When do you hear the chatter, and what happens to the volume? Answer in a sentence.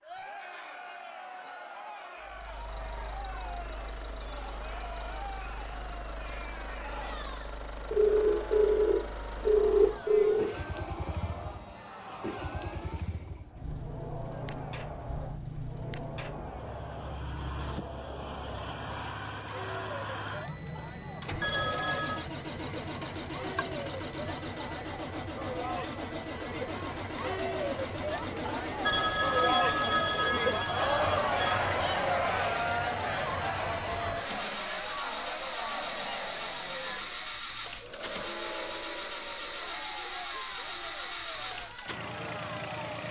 You can hear the chatter from 0.0 to 43.0 s, getting louder then quieter.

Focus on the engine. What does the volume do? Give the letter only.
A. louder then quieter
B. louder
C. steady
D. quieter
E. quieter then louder
B.